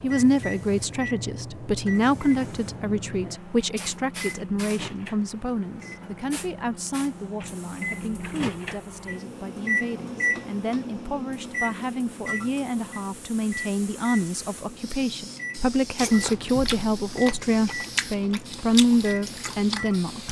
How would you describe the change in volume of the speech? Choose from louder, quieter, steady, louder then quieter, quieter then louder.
quieter then louder.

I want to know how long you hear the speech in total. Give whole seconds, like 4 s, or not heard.
20 s.